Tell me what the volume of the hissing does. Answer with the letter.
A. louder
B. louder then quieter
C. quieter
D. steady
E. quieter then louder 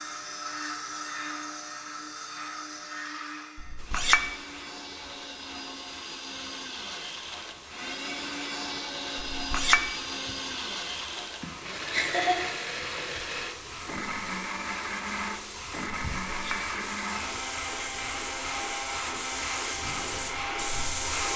A.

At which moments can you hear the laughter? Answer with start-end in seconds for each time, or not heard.
11.4-12.5.